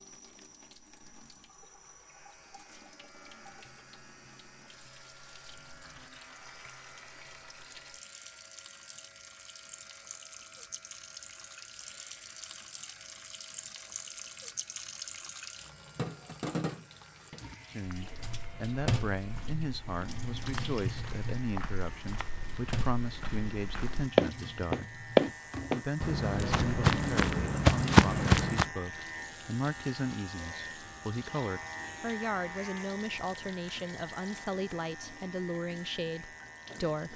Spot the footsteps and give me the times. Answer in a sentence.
You can hear the footsteps from 17.9 to 28.7 s.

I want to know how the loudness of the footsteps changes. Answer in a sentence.
The volume of the footsteps goes up.